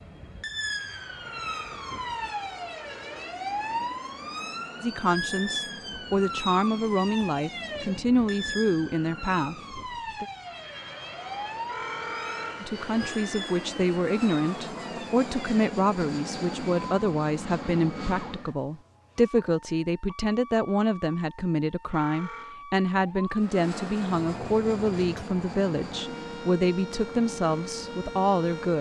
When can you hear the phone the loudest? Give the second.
12 s.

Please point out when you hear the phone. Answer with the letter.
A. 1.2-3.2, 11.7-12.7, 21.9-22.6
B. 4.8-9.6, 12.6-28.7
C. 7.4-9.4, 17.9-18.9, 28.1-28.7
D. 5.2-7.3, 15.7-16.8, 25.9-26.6
A.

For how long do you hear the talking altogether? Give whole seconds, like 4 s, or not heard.
21 s.